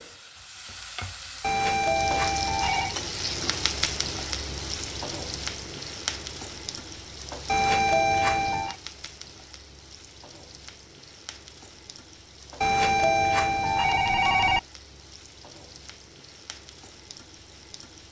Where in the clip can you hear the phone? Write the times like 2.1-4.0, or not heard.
1.4-3.0, 7.5-8.8, 12.6-14.6.